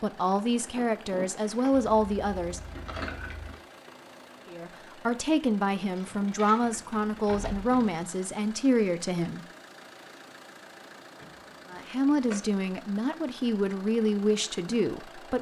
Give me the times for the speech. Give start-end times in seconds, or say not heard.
0.0-2.6, 4.5-9.4, 11.7-15.3.